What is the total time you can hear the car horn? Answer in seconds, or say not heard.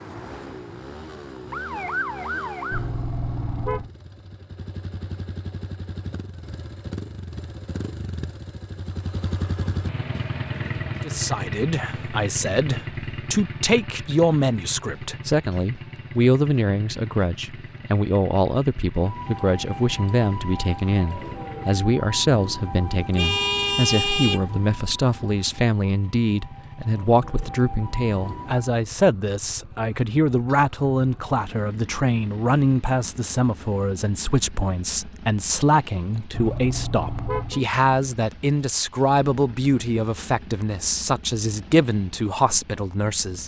4 s.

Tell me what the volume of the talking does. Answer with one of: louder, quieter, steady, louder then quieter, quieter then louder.
steady.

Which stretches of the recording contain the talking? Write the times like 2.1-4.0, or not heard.
11.0-43.4.